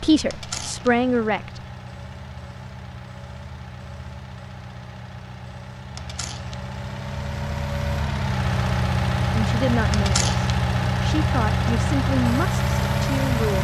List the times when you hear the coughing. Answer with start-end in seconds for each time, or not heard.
not heard.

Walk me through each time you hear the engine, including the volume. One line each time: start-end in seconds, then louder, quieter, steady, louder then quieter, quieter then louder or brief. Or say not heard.
0.0-13.5 louder.